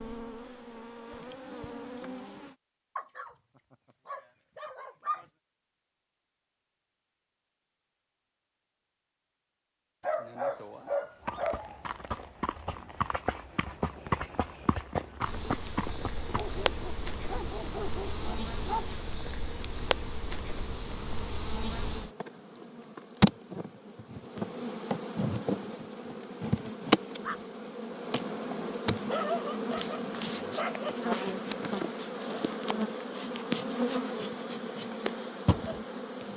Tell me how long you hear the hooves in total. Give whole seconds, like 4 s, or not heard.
5 s.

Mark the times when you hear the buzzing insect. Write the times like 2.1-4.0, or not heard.
0.0-2.5, 15.2-36.3.